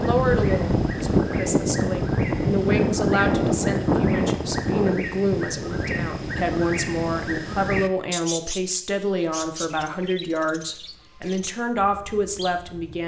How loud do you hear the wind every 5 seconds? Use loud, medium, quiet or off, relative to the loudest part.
loud, medium, off.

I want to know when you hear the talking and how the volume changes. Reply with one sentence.
The talking can be heard from 0.0 to 13.0 s, at a steady volume.